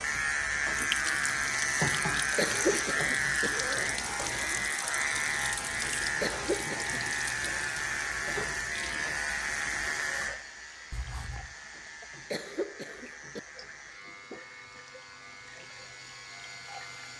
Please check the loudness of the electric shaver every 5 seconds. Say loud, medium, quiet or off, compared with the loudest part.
loud, loud, quiet, quiet.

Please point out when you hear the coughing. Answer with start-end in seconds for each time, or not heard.
2.4-3.5, 6.2-7.0, 12.3-13.4.